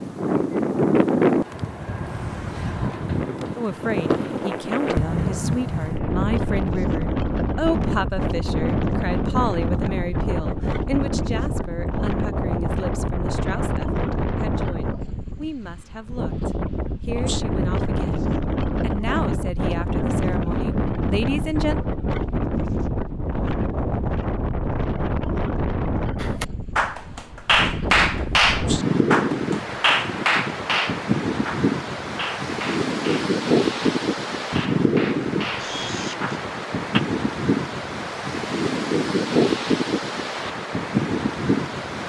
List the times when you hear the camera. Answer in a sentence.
You can hear the camera from 35.5 to 36.4 s.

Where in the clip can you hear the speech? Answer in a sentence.
The speech can be heard from 3.5 to 21.8 s.